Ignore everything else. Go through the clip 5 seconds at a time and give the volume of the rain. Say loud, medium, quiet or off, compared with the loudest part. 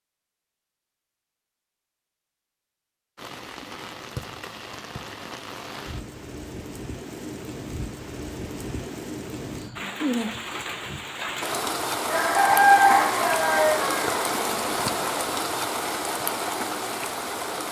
medium, medium, loud, loud.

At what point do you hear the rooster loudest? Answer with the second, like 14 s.
13 s.